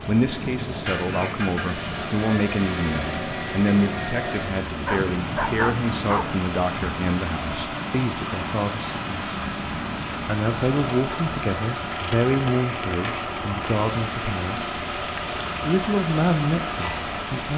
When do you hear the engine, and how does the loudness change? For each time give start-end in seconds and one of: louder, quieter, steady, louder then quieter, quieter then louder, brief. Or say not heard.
0.0-17.5 steady.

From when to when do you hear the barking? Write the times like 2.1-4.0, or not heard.
4.8-6.3.